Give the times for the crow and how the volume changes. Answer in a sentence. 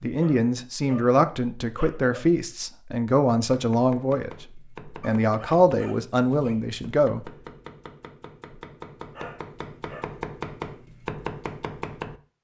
The crow can't be heard in this clip.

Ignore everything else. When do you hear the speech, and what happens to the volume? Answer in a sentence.
The speech can be heard from 0.0 to 7.3 s, at a steady volume.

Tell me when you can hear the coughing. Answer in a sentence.
The coughing can't be heard in this clip.